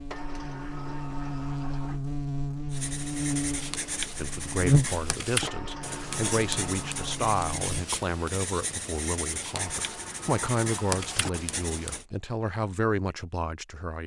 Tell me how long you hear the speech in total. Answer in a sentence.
You can hear the speech for 10 seconds altogether.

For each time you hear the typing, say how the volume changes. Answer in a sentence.
You can't hear the typing here.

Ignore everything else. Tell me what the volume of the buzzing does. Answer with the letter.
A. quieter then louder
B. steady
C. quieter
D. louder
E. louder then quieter
E.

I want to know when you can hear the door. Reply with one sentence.
The door can be heard from 0.1 to 2.0 s, from 5.5 to 7.2 s and from 9.6 to 11.3 s.